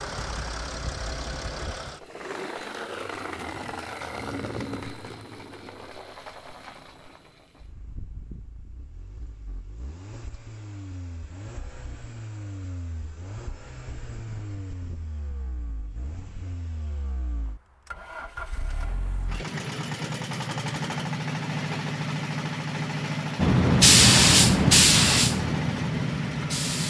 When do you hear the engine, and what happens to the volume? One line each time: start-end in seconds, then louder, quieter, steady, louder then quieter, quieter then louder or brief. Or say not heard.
0.0-26.8 quieter then louder.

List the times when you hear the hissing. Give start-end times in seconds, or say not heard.
23.4-26.8.